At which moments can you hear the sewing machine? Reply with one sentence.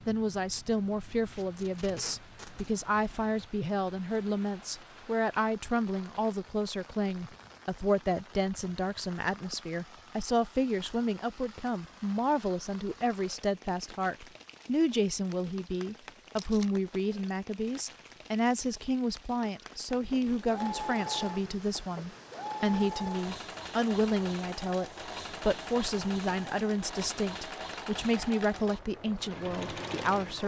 The sewing machine can be heard from 19.9 to 30.4 s.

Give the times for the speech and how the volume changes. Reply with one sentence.
The speech can be heard from 0.1 to 30.4 s, at a steady volume.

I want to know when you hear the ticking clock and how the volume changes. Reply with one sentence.
The ticking clock can't be heard in this clip.